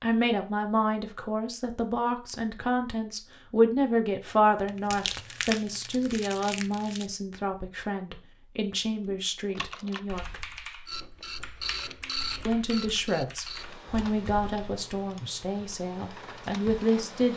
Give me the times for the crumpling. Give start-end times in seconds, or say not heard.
4.7-7.1.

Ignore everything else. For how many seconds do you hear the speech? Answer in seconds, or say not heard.
15 s.